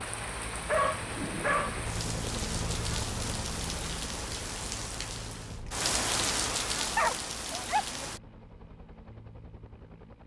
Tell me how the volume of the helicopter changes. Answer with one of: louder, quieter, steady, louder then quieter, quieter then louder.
quieter.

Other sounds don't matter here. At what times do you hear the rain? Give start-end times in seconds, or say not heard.
0.0-8.2.